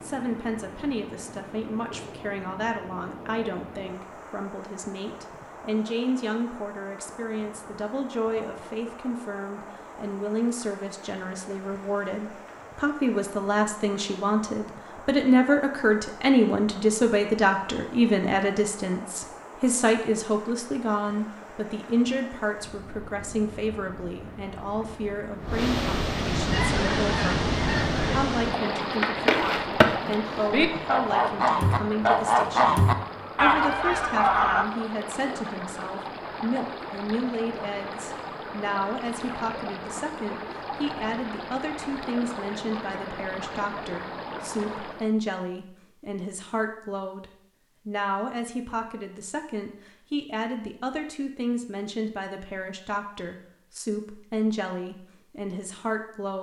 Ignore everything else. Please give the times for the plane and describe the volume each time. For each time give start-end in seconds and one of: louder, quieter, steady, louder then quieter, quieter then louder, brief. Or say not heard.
not heard.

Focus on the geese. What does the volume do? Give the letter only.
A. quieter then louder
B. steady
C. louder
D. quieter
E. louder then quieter
C.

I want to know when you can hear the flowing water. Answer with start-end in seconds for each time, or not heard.
0.0-45.1.